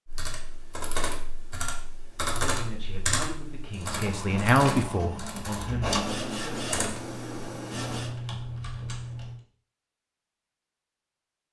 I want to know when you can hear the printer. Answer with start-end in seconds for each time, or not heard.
3.8-8.2.